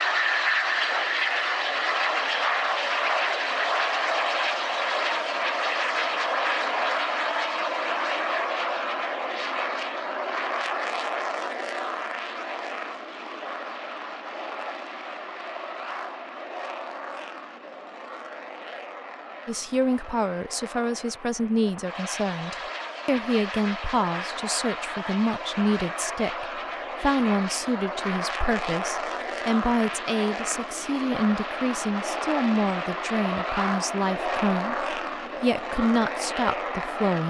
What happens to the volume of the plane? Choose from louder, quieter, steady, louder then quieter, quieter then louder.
quieter then louder.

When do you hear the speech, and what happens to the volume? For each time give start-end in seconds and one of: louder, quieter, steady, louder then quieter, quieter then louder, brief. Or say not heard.
19.4-37.2 steady.